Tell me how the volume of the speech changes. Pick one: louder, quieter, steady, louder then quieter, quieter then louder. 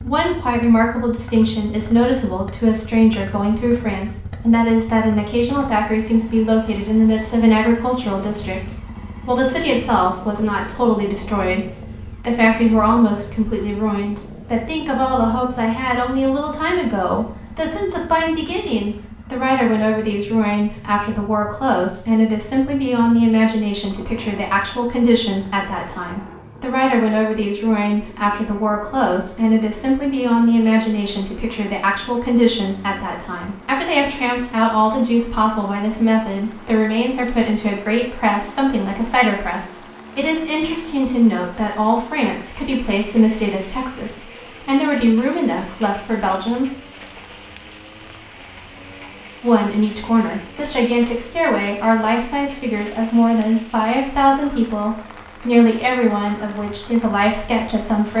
steady.